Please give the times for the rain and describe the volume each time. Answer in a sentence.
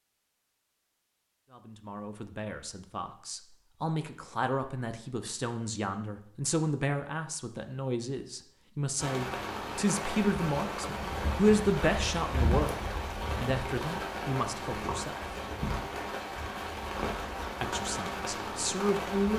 You can hear the rain from 8.9 to 19.3 s, at a steady volume.